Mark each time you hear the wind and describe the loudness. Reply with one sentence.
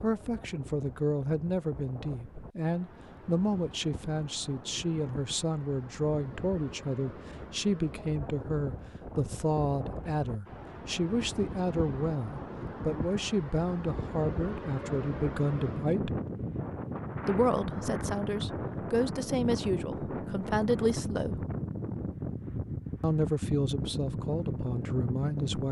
You can hear the wind from 0.0 to 25.6 s, getting louder.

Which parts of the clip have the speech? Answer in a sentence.
The speech can be heard from 0.0 to 16.2 s, from 17.2 to 21.4 s and from 23.0 to 25.6 s.